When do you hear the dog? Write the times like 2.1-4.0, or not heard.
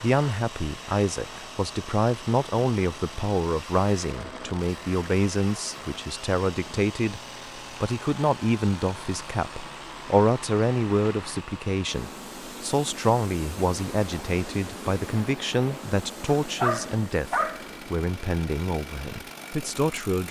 16.2-17.6.